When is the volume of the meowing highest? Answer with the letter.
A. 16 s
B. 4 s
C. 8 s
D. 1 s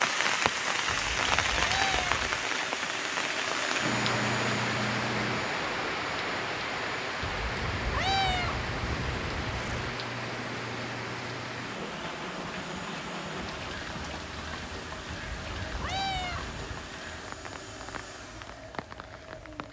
C.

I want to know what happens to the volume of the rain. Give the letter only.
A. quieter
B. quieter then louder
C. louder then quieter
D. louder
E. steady
A.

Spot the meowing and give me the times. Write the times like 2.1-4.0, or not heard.
0.8-2.5, 7.2-9.9, 15.1-16.9.